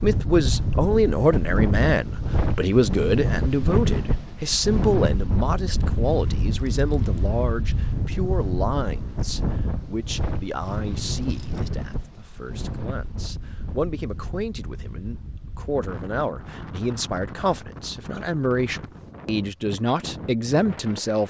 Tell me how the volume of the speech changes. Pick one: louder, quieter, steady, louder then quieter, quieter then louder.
quieter then louder.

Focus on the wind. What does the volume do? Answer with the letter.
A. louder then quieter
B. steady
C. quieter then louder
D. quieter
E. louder
D.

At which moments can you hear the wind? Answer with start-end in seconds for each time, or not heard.
0.0-21.2.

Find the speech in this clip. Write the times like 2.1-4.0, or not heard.
0.0-21.2.